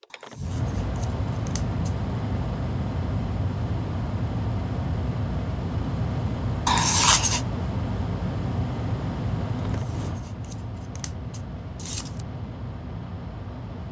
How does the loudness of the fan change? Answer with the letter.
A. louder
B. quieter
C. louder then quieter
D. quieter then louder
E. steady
B.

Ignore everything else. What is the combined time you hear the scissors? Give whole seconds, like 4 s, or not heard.
5 s.